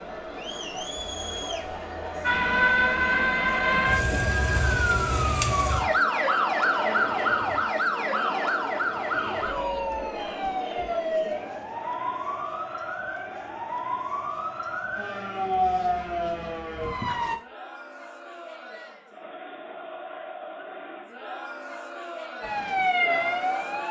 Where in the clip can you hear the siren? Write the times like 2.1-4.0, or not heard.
2.2-17.4, 22.4-23.8.